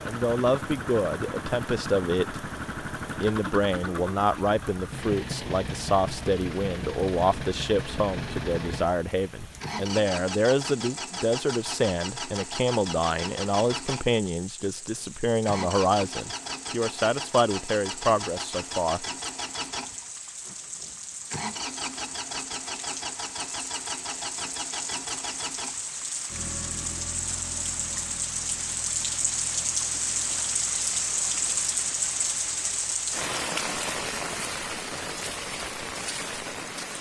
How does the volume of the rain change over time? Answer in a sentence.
The volume of the rain goes up.